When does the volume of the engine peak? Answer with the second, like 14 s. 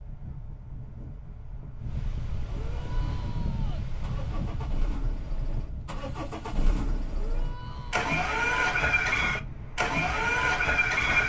11 s.